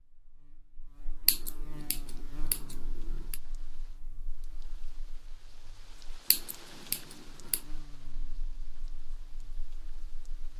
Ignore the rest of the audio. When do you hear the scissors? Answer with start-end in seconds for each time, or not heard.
1.2-3.4, 6.3-7.6.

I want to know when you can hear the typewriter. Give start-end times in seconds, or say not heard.
not heard.